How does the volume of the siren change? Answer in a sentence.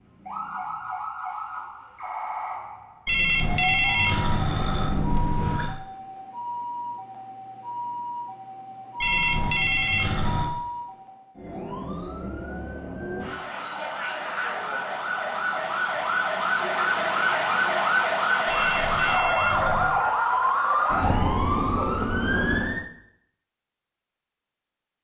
The volume of the siren goes up.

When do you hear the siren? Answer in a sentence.
You can hear the siren from 0.0 to 22.9 s.